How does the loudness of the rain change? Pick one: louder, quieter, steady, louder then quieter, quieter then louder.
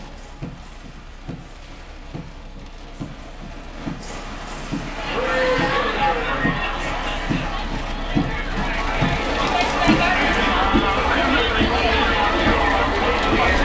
louder.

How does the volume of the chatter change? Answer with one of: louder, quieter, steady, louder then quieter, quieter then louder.
quieter then louder.